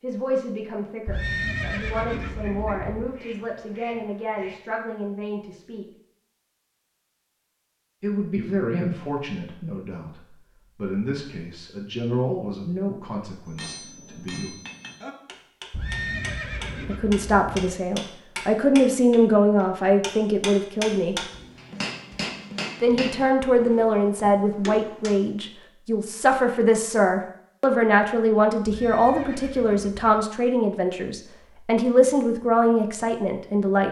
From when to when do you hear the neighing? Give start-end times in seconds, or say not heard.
1.1-3.1, 15.7-17.8, 28.6-30.1.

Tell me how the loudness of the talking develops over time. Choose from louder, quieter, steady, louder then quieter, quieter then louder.
louder.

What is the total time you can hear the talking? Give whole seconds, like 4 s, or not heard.
28 s.